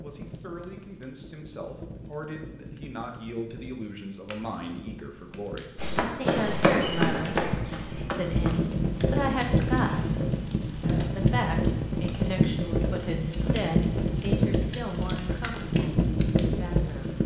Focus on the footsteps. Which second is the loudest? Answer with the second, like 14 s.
7 s.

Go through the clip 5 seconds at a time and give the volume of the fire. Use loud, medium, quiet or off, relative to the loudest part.
quiet, loud, loud, loud.